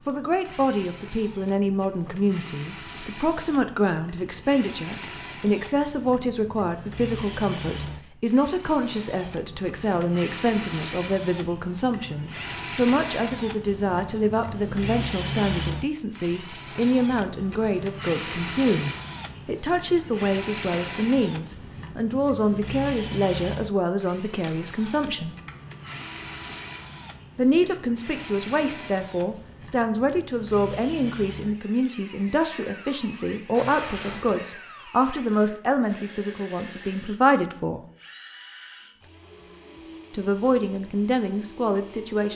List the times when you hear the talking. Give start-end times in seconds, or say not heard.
0.1-25.4, 27.4-37.8, 40.1-42.3.